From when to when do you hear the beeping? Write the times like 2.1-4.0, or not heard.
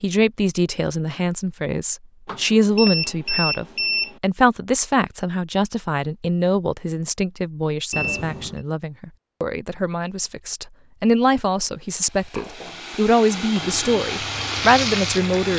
2.2-4.2, 7.9-8.6.